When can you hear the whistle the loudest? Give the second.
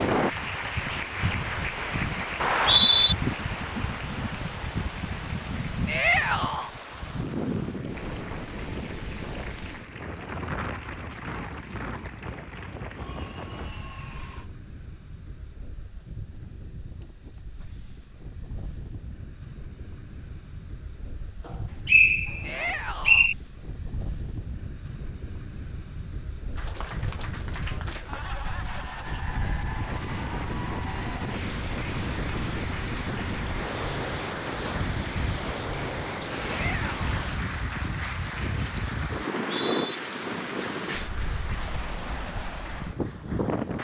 3 s.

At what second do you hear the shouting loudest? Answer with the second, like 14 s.
6 s.